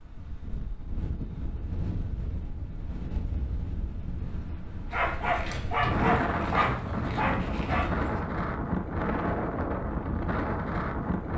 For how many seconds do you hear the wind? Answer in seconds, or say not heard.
11 s.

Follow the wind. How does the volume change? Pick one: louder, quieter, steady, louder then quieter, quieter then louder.
louder.